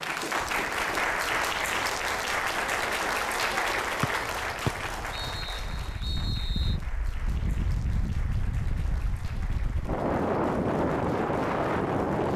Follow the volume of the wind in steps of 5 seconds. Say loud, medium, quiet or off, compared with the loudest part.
quiet, medium, loud.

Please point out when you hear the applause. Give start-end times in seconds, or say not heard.
0.0-12.3.